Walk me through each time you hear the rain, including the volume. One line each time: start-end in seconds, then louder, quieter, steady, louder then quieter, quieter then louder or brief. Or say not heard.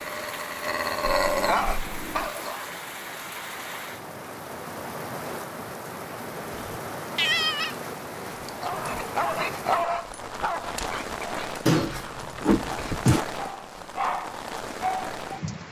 0.0-15.6 steady.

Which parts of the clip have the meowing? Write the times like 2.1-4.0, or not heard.
1.0-2.3, 6.5-7.8, 11.7-13.2.